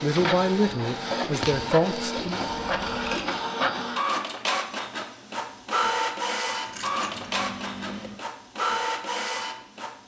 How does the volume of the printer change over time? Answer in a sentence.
The loudness of the printer stays about the same.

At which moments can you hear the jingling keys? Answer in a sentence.
You can hear the jingling keys from 2.5 to 3.3 s and from 6.7 to 8.2 s.